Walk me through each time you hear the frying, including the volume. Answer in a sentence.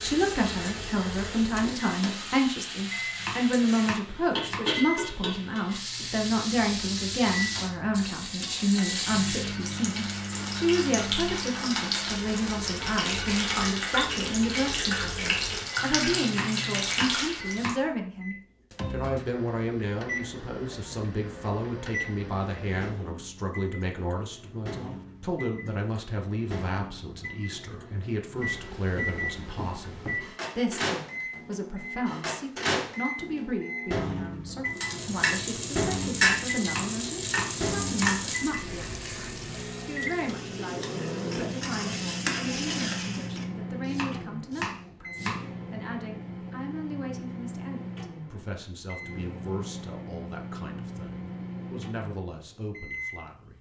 The frying can be heard from 0.0 to 17.8 s, getting louder; and from 34.8 to 43.5 s, getting quieter then louder.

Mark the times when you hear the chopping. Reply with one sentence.
The chopping can be heard from 3.1 to 4.6 s, from 16.2 to 17.8 s, from 36.6 to 38.1 s and from 43.9 to 45.4 s.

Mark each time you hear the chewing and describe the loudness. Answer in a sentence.
The chewing can't be heard in this clip.